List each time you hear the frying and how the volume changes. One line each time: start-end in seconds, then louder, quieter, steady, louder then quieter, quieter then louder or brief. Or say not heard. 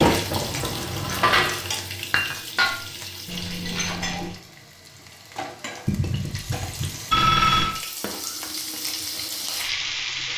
0.0-10.3 quieter then louder.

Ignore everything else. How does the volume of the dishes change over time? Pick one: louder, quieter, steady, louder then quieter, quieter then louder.
louder then quieter.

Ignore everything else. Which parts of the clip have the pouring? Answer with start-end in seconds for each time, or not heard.
0.3-1.5, 5.8-7.0.